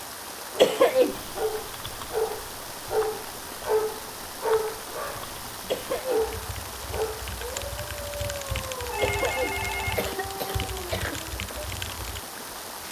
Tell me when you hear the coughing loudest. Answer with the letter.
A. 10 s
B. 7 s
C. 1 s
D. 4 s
C.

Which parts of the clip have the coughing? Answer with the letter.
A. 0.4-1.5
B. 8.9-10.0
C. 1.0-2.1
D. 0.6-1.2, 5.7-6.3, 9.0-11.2
D.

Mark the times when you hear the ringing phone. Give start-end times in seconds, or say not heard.
8.9-10.0.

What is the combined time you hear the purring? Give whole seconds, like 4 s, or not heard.
not heard.